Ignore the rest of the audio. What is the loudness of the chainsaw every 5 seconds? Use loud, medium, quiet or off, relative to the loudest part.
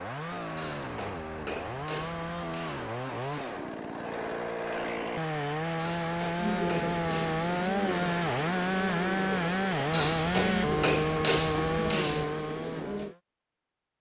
medium, loud, loud.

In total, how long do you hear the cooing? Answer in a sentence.
The cooing can be heard for 7 seconds in total.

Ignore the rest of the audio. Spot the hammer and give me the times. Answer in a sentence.
You can hear the hammer from 0.6 to 2.9 s, from 5.8 to 7.4 s and from 9.9 to 12.2 s.